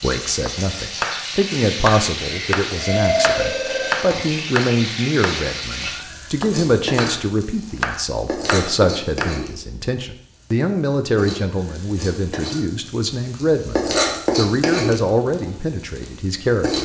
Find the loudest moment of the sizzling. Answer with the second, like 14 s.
14 s.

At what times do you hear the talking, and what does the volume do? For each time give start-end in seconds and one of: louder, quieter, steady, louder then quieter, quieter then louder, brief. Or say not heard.
0.0-16.8 steady.